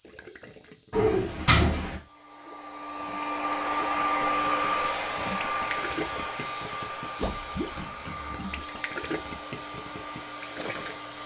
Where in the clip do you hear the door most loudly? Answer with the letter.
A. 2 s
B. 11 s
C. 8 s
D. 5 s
A.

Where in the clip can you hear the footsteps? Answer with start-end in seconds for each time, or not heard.
not heard.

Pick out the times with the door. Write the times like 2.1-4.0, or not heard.
0.9-2.0, 7.2-8.4.